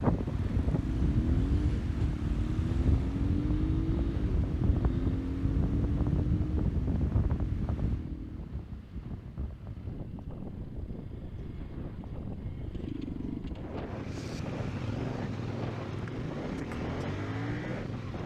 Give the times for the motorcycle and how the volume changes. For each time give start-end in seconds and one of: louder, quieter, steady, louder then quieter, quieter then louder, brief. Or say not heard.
0.0-18.2 quieter then louder.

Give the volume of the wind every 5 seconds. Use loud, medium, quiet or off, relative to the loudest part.
loud, loud, medium, medium.